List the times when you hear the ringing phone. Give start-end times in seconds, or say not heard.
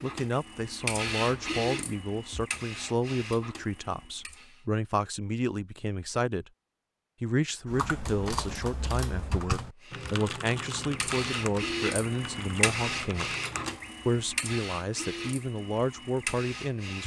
not heard.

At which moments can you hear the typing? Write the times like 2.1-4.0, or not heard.
7.7-13.8.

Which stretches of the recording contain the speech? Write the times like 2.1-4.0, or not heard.
0.0-6.5, 7.2-13.3, 14.1-17.0.